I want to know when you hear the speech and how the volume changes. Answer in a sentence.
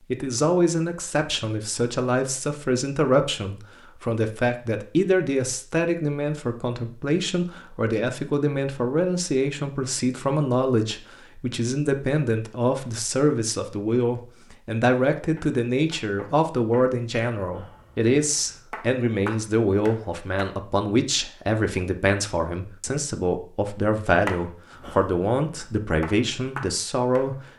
You can hear the speech from 0.1 to 27.4 s, at a steady volume.